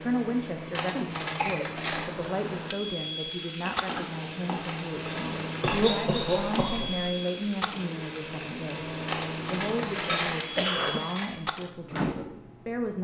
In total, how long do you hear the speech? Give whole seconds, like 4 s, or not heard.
13 s.